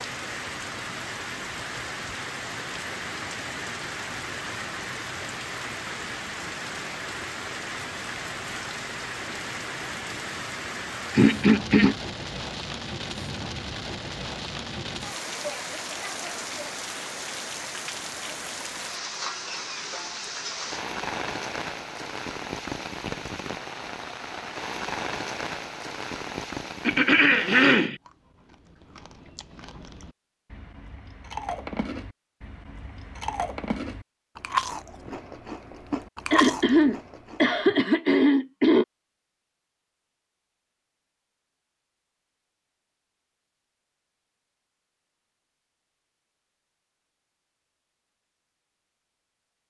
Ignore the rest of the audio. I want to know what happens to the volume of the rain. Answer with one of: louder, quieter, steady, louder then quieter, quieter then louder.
steady.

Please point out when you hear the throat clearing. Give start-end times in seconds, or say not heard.
11.1-11.9, 26.9-27.9, 36.3-38.9.